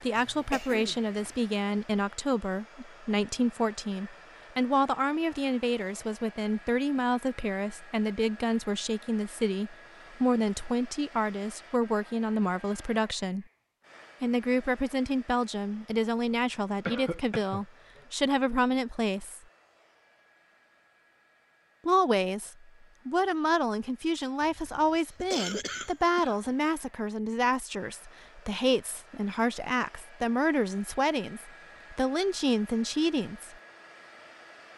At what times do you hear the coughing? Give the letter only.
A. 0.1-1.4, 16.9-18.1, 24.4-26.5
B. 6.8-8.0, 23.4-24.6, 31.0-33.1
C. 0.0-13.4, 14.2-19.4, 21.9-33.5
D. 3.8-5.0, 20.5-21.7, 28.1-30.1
A.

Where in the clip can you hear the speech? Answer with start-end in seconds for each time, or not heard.
0.0-13.4, 14.2-19.4, 21.9-33.5.